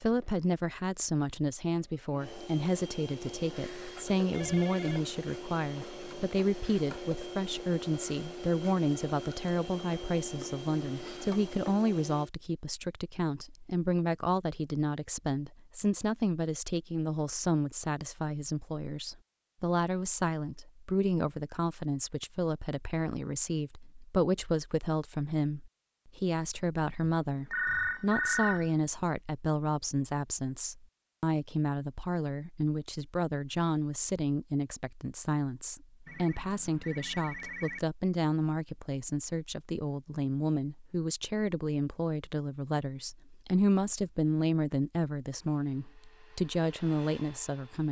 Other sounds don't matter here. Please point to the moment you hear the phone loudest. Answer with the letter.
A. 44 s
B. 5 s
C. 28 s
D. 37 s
C.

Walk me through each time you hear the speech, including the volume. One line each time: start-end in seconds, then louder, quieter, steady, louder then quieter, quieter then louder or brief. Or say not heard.
0.0-47.8 steady.